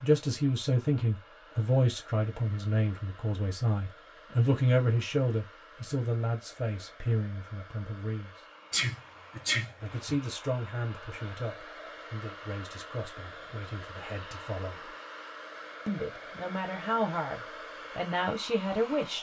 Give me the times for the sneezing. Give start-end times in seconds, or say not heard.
8.7-10.2.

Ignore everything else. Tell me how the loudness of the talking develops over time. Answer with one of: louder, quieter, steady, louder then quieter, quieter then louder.
quieter then louder.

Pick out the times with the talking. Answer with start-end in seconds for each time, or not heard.
0.0-8.3, 9.8-14.9, 15.8-19.1.